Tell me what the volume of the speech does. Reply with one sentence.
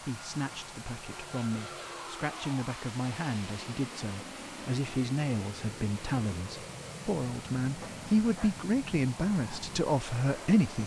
The volume of the speech goes up.